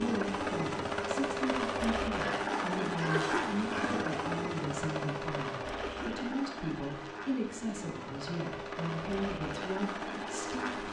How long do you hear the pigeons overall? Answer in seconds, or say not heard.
not heard.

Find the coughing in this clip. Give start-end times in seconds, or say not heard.
3.1-3.6, 5.8-6.2.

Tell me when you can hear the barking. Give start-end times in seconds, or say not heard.
2.1-4.2.